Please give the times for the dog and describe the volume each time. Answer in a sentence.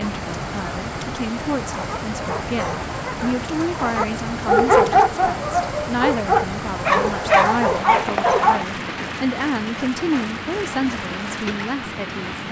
The dog can be heard from 1.8 to 8.7 s, getting louder.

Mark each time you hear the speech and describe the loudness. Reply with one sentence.
The speech can be heard from 0.0 to 12.4 s, at a steady volume.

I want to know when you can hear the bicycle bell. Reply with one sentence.
You can't hear the bicycle bell here.